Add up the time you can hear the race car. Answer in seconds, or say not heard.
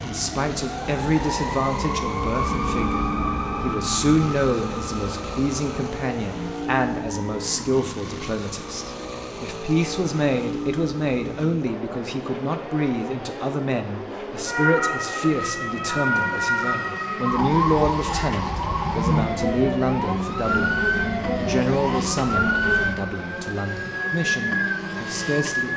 26 s.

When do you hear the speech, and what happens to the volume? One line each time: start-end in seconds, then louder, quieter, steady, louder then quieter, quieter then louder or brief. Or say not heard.
0.1-25.7 steady.